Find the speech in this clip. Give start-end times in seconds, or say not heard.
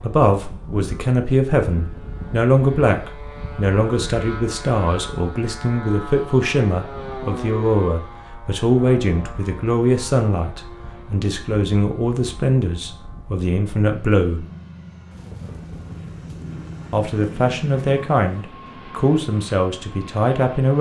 0.0-14.4, 16.9-20.7.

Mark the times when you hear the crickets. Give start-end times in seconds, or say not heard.
not heard.